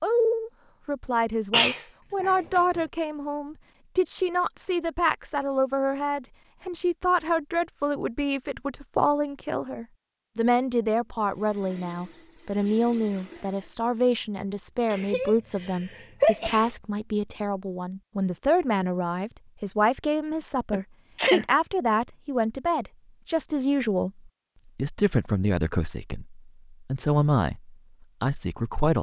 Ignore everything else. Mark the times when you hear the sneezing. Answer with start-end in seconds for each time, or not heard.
1.5-2.8, 14.9-16.7, 20.7-21.4.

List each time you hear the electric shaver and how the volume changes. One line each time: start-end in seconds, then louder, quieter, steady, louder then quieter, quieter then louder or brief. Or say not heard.
not heard.